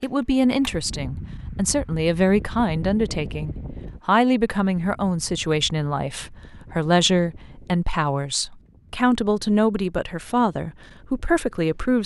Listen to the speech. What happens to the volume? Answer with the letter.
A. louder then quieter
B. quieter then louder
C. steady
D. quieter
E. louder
C.